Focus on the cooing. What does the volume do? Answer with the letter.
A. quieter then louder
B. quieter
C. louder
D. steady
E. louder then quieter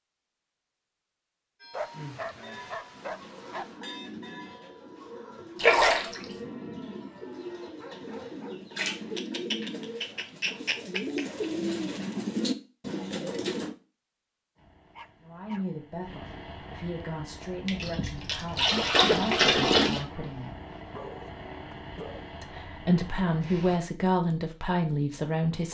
C.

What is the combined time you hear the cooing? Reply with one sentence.
The cooing can be heard for 12 seconds in total.